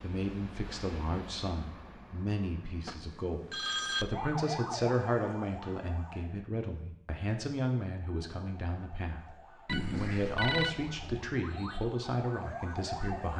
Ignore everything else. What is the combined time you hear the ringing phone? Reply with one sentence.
You can hear the ringing phone for 3 seconds altogether.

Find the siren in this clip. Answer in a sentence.
You can hear the siren from 4.1 to 6.3 s and from 8.1 to 13.3 s.